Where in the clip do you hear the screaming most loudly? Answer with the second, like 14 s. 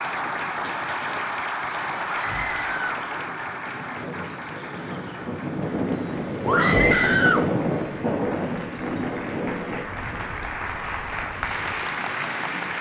7 s.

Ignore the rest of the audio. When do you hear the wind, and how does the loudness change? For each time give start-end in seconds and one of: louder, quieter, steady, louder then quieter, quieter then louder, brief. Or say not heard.
0.0-12.7 louder then quieter.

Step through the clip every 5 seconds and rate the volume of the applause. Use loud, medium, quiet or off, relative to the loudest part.
loud, medium, loud.